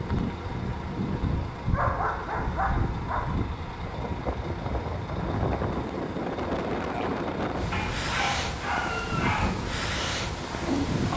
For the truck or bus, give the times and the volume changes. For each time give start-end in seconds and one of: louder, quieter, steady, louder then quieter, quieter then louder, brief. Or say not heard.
0.0-11.1 steady.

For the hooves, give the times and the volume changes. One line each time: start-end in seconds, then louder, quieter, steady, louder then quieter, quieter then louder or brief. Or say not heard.
not heard.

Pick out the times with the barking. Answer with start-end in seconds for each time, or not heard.
1.7-3.2, 7.7-9.6.